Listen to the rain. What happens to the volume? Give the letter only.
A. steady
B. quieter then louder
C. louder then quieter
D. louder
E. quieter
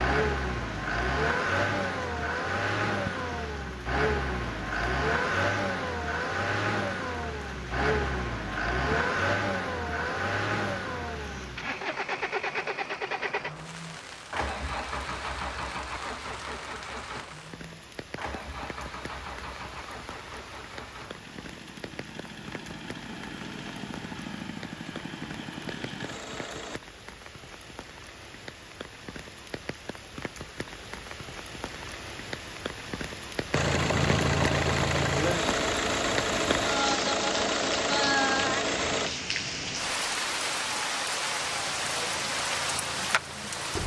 D.